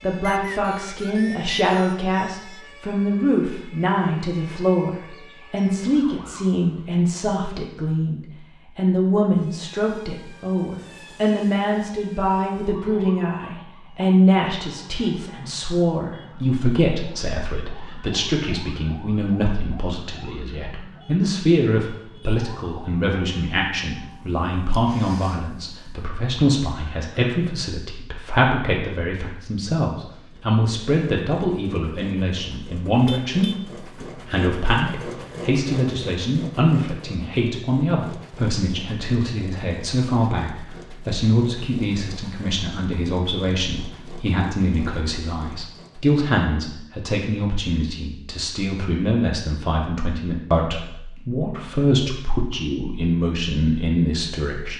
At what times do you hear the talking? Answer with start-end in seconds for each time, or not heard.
0.0-54.7.